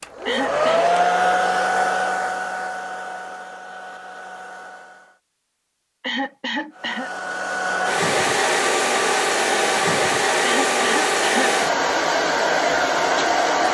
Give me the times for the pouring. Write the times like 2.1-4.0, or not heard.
not heard.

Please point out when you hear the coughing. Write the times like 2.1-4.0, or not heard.
0.2-0.8, 6.0-7.1, 10.4-11.6.